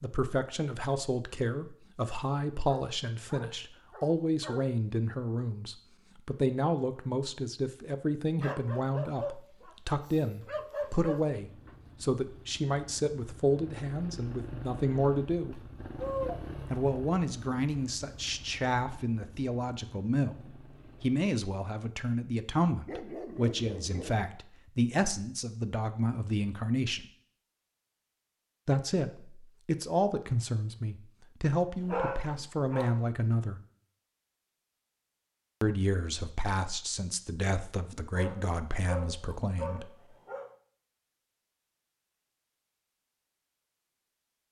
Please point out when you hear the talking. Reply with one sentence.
The talking can be heard from 0.0 to 15.6 s, from 16.7 to 27.1 s, from 28.6 to 33.6 s and from 35.6 to 39.9 s.